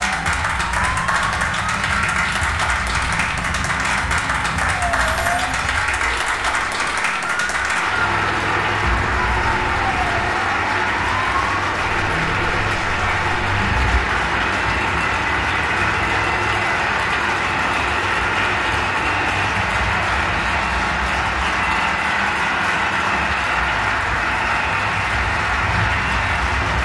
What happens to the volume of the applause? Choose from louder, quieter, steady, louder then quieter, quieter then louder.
steady.